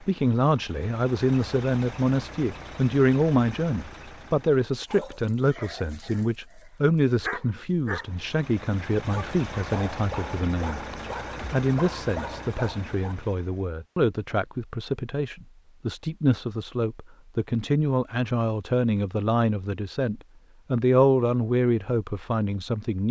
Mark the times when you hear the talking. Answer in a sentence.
You can hear the talking from 0.0 to 10.8 s and from 11.5 to 23.0 s.